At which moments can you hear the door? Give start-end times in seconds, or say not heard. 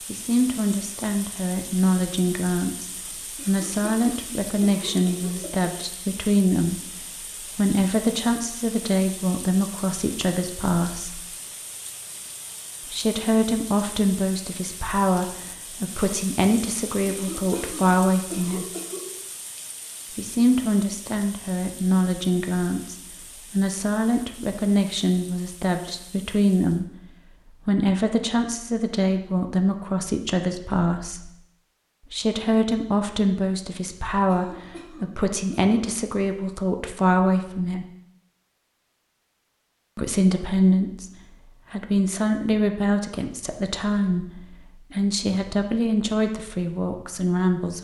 not heard.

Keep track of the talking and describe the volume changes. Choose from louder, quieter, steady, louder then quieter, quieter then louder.
steady.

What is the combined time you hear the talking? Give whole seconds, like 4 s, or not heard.
42 s.